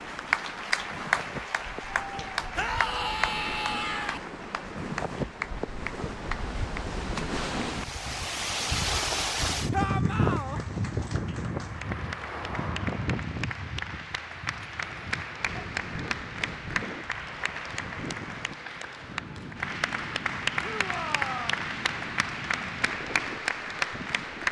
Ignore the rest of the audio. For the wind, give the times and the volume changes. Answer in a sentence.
You can hear the wind from 0.0 to 24.4 s, getting louder then quieter.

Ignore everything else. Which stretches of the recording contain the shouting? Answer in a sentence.
You can hear the shouting from 2.5 to 4.2 s, from 9.7 to 10.6 s and from 20.6 to 21.6 s.